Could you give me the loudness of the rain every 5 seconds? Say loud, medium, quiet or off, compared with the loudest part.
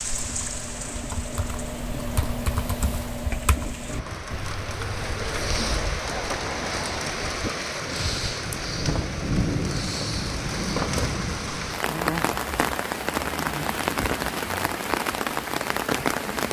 medium, loud, loud, loud.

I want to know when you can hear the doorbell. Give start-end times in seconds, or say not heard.
not heard.